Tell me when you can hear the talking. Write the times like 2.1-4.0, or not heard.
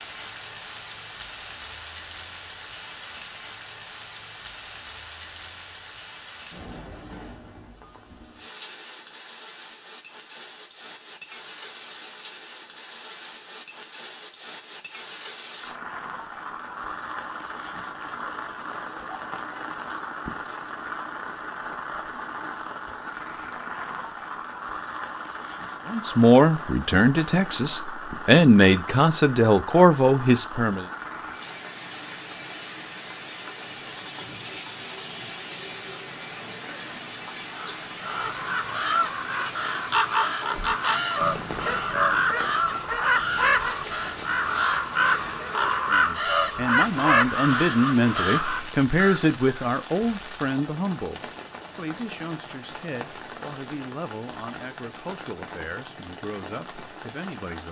25.9-30.9, 45.7-57.6.